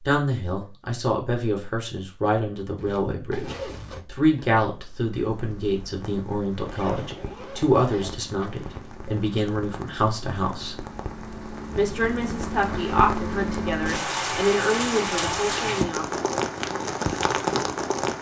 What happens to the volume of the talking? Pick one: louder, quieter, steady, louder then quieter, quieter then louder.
steady.